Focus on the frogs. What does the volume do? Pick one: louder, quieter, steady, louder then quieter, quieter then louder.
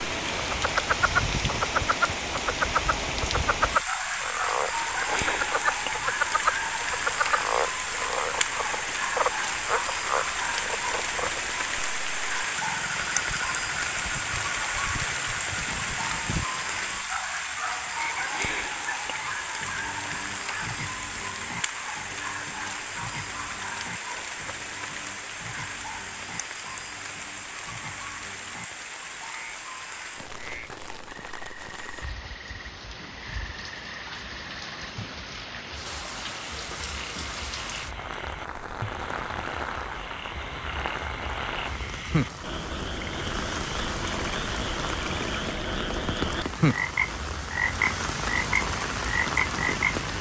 quieter then louder.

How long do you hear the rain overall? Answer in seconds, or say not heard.
50 s.